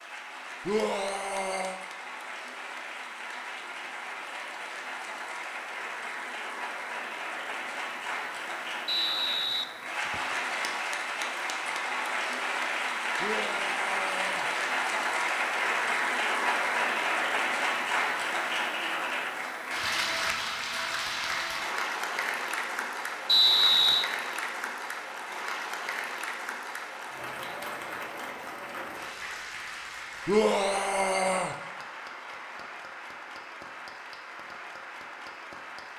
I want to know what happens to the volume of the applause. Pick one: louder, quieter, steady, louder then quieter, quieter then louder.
louder then quieter.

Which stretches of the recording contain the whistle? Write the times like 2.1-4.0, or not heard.
8.8-10.3, 23.2-24.1.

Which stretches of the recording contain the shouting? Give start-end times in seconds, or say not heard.
0.7-1.8, 13.2-14.4, 30.2-31.6.